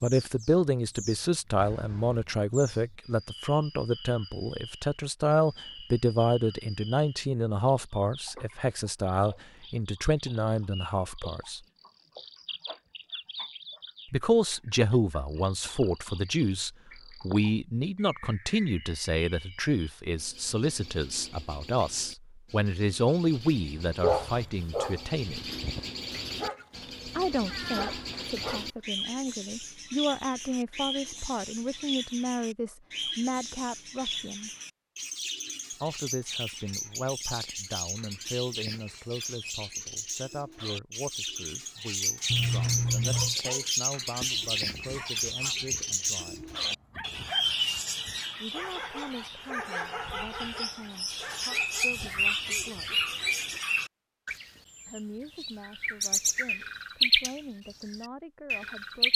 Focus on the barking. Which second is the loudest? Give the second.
24 s.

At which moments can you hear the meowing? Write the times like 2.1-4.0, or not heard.
1.6-2.2, 26.8-28.4, 42.3-43.4.